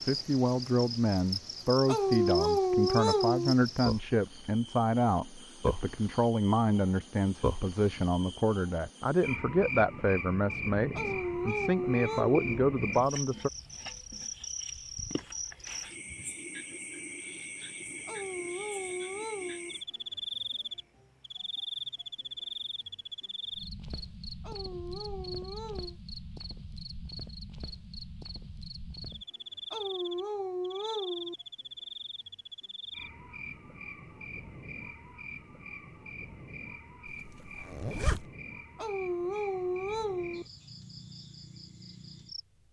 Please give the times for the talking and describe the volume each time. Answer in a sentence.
You can hear the talking from 0.0 to 13.5 s, at a steady volume.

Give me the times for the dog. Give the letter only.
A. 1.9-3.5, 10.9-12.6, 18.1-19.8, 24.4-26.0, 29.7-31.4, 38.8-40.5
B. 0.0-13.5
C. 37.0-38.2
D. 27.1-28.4
A.